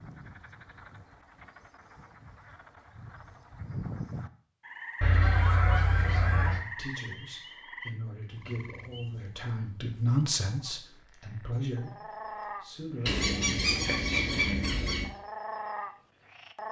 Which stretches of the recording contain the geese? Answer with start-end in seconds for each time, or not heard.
5.0-6.6, 13.1-15.1.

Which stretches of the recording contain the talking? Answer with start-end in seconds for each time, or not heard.
6.0-13.2.